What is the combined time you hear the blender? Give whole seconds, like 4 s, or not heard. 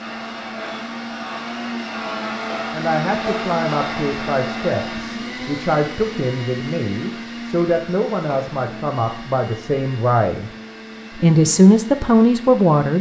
13 s.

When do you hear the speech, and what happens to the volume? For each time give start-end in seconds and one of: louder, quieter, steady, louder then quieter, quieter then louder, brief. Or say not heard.
2.7-10.5 steady
11.2-12.9 brief.